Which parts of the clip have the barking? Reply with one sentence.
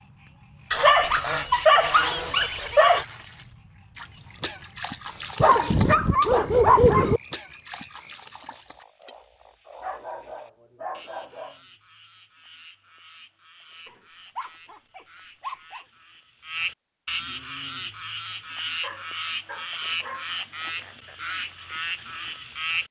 You can hear the barking from 0.7 to 3.0 s, from 5.4 to 7.2 s, from 9.8 to 11.6 s, from 13.8 to 15.8 s and from 18.8 to 20.3 s.